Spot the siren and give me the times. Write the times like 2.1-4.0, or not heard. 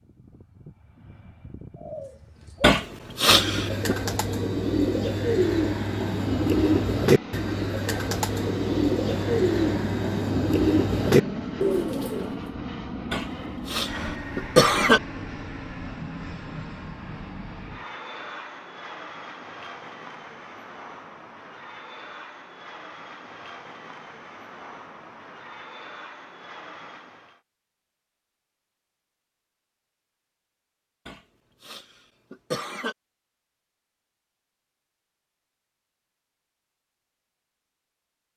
not heard.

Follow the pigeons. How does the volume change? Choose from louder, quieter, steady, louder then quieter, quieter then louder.
louder.